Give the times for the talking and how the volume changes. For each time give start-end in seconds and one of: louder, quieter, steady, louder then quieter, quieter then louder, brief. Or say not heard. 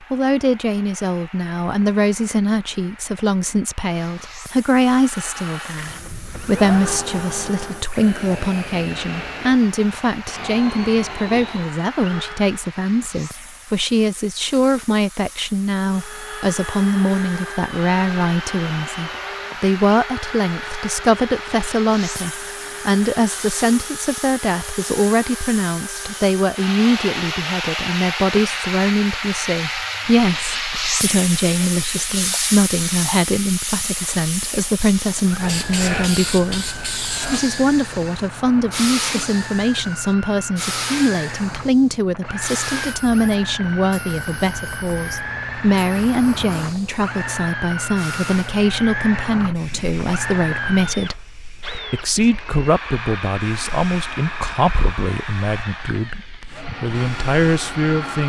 0.1-51.2 steady
51.9-58.2 quieter then louder.